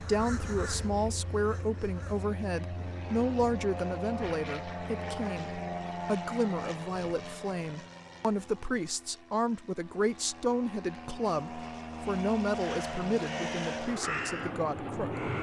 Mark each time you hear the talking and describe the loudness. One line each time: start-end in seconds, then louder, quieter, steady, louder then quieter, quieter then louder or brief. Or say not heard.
0.0-15.3 steady.